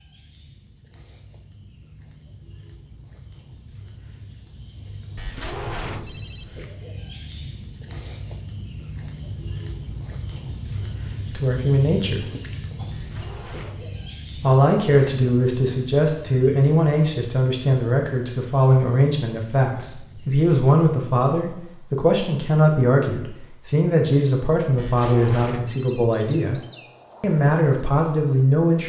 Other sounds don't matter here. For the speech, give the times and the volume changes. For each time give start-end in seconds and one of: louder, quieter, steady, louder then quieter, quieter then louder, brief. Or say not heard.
11.3-12.2 brief
14.4-26.6 steady
27.2-28.8 brief.